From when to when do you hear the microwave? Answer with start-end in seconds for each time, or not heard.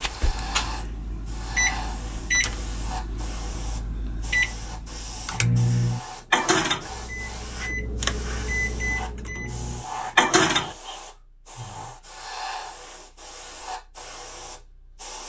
0.0-10.8.